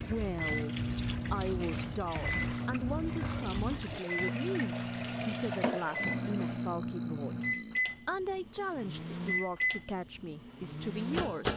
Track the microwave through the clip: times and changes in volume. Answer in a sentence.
The microwave can be heard from 0.2 to 11.5 s, at a steady volume.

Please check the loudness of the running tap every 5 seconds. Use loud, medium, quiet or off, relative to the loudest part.
loud, loud, off.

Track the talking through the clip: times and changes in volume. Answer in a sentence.
You can hear the talking from 0.0 to 11.5 s, at a steady volume.